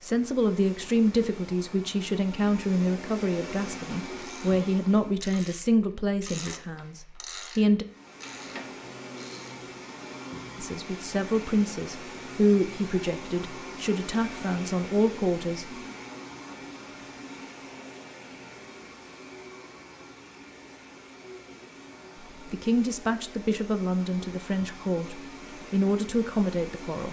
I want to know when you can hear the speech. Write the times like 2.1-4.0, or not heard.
0.0-7.8, 10.6-15.7, 22.5-27.0.